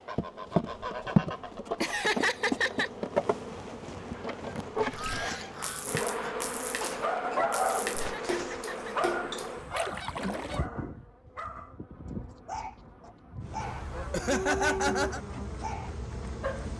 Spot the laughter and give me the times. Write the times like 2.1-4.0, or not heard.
1.8-2.9, 8.0-8.9, 13.7-15.2.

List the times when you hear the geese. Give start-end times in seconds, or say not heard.
0.1-2.1, 4.5-6.4, 8.8-10.7, 13.6-15.2.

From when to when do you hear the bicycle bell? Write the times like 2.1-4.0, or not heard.
not heard.